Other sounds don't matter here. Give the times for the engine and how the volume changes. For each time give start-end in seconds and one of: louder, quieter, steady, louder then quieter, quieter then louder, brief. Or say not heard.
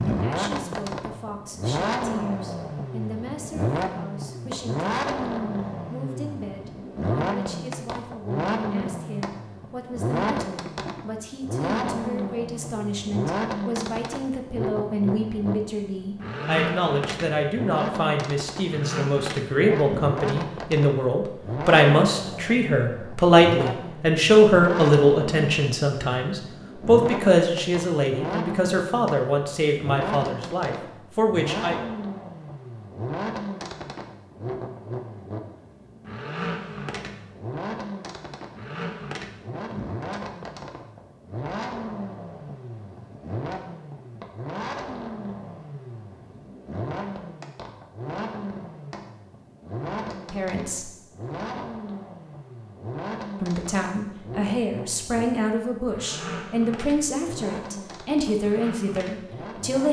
0.0-59.8 quieter.